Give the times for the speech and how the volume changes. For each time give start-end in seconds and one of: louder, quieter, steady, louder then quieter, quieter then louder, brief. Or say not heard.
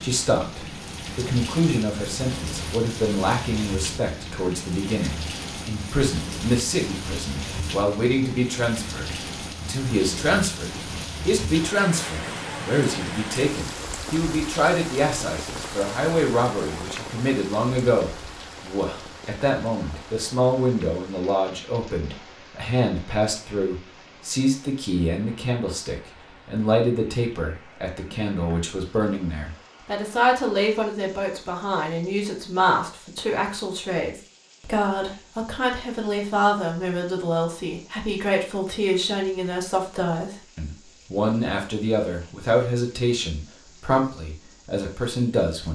0.0-45.6 steady.